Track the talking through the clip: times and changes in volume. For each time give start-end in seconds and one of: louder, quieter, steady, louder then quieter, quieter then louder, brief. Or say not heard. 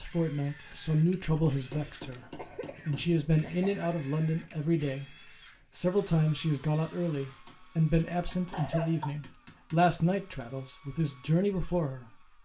0.0-12.2 steady.